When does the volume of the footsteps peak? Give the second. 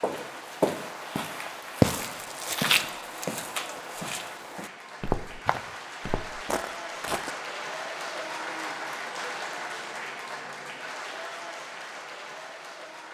2 s.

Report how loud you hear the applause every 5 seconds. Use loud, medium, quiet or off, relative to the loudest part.
medium, loud, loud.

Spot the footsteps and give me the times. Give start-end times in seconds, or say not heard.
0.0-7.4.